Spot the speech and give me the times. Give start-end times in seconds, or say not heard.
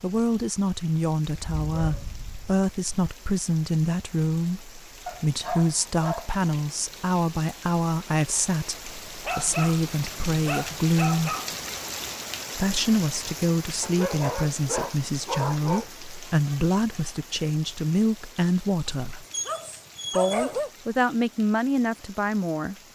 0.0-11.3, 12.6-19.2, 20.1-22.8.